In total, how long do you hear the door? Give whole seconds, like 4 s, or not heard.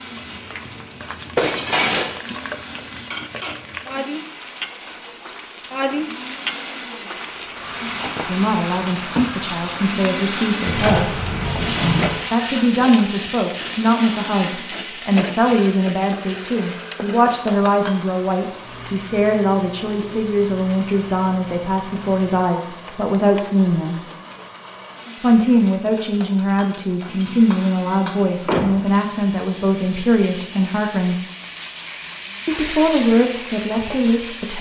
2 s.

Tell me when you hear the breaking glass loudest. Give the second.
2 s.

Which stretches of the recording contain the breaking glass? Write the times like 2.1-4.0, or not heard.
1.4-2.1, 17.4-18.0, 26.2-28.1.